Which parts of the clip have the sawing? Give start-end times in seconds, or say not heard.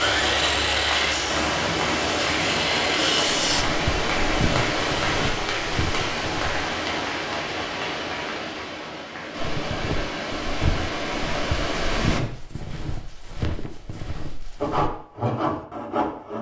0.0-3.6, 14.6-16.3.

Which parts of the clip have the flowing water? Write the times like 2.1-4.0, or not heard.
0.0-12.2.